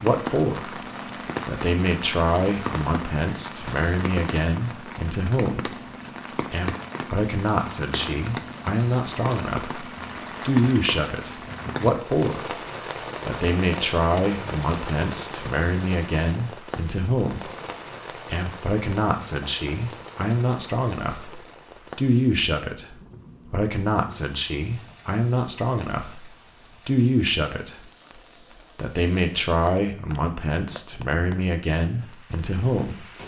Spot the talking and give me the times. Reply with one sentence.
The talking can be heard from 0.0 to 5.7 s, from 6.5 to 12.5 s, from 13.2 to 17.4 s, from 18.2 to 26.2 s, from 26.9 to 27.9 s and from 28.8 to 33.0 s.